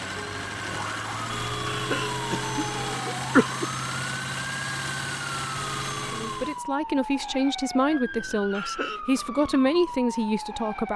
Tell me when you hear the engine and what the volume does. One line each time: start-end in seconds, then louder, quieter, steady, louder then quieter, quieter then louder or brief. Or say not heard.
0.0-6.6 steady.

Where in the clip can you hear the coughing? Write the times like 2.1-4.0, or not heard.
1.6-3.6, 8.5-9.0.